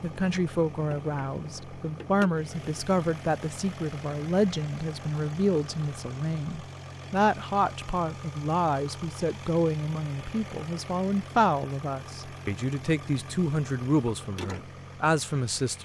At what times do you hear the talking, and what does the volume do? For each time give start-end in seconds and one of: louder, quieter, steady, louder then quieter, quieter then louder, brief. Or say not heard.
0.0-15.8 steady.